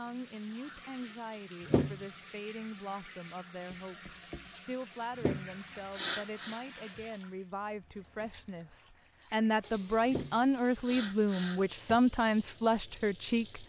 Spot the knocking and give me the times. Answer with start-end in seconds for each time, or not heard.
3.7-4.6.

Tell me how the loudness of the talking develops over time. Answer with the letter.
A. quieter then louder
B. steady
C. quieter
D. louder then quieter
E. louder
E.